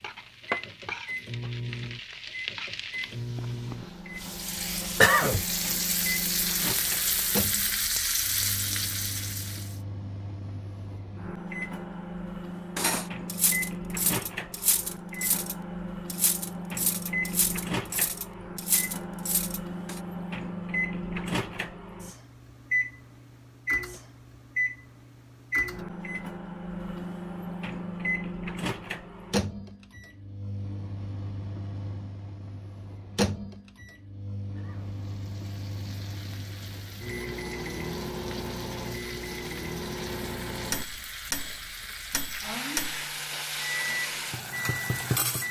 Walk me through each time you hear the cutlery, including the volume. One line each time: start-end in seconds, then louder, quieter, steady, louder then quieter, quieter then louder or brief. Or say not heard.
12.8-20.0 steady.